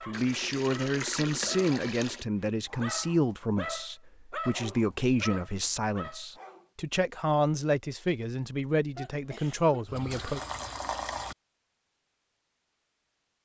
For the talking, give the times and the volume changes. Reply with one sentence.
You can hear the talking from 0.1 to 10.4 s, at a steady volume.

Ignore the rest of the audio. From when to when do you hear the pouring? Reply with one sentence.
You can hear the pouring from 0.1 to 2.2 s and from 9.8 to 11.3 s.